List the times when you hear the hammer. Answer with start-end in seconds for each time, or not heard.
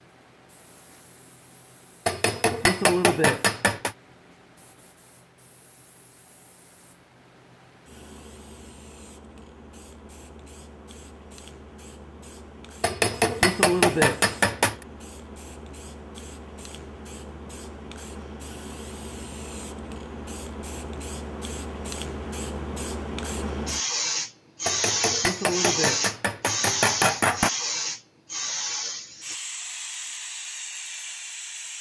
2.0-4.0, 12.8-14.8, 24.6-27.5.